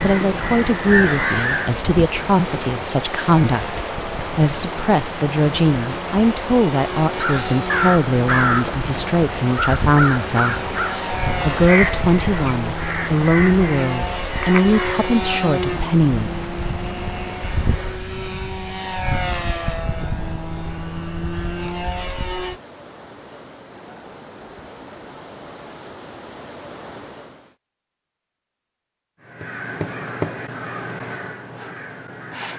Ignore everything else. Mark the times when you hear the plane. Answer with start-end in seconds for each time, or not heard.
0.0-22.6.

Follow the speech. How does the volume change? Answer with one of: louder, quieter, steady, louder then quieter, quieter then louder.
steady.